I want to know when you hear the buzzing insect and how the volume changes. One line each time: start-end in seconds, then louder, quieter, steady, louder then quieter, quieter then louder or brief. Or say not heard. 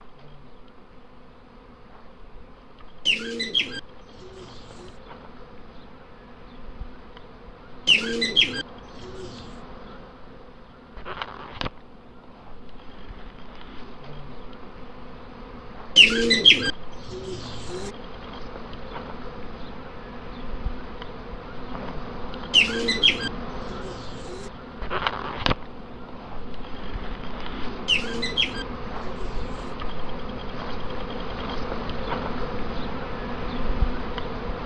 0.0-34.6 louder.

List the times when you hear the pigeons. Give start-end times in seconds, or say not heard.
3.0-4.9, 7.8-9.4, 15.9-17.9, 22.5-24.5, 27.9-29.7.